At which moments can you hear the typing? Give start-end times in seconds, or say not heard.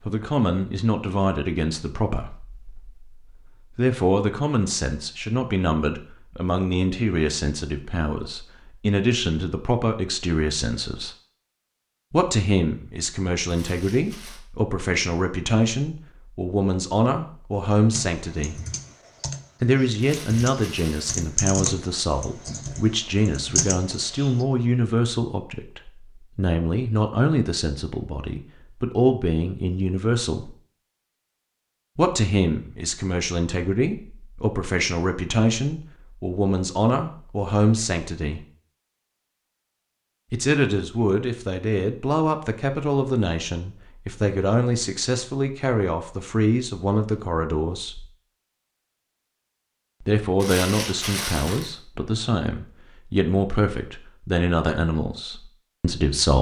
17.9-24.4.